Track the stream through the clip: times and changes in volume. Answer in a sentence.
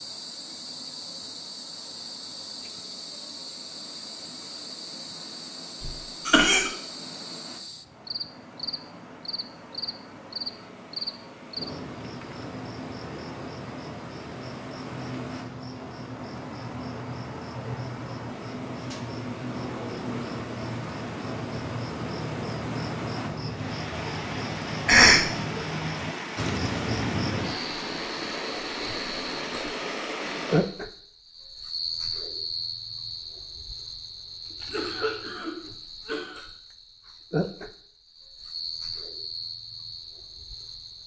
The stream can be heard from 0.0 to 30.6 s, getting louder.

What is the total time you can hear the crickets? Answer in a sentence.
You can hear the crickets for 41 seconds altogether.